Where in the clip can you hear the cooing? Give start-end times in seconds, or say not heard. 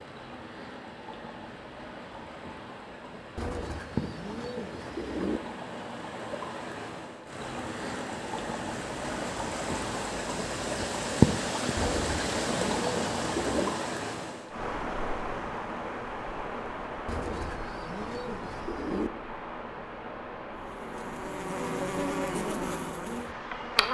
3.4-5.4, 11.8-13.8, 17.1-19.1.